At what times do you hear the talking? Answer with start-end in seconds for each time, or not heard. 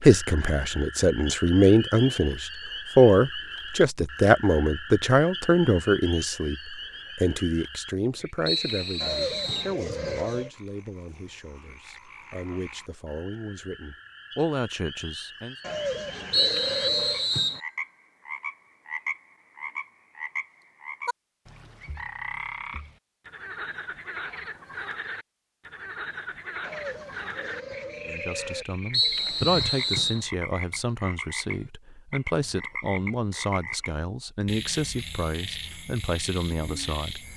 0.0-15.6, 28.1-37.3.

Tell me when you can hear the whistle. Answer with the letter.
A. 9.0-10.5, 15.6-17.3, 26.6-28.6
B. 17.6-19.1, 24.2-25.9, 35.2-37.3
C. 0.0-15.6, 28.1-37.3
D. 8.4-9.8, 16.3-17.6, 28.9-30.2
D.